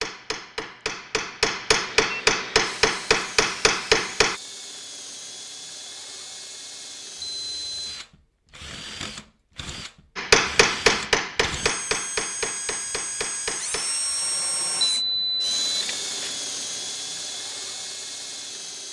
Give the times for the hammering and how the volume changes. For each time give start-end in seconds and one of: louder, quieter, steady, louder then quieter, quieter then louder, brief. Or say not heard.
0.0-4.4 louder
10.2-14.9 quieter.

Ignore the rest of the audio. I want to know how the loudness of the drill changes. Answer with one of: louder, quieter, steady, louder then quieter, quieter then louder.
louder.